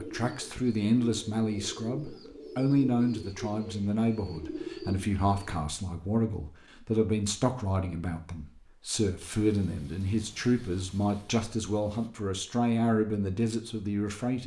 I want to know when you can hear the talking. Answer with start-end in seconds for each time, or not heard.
0.0-14.4.